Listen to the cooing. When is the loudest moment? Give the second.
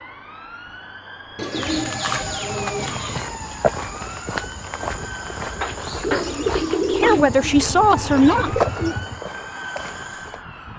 7 s.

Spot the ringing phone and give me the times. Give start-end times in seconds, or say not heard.
1.8-2.9, 5.6-6.8.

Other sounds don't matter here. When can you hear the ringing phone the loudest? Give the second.
6 s.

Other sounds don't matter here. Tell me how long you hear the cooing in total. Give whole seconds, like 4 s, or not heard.
5 s.